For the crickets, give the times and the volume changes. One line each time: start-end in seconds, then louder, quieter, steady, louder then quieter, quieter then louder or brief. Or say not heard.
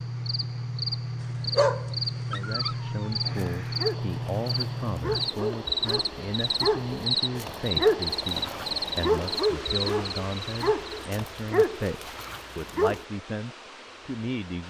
0.0-10.9 steady.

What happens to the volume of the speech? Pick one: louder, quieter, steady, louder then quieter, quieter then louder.
steady.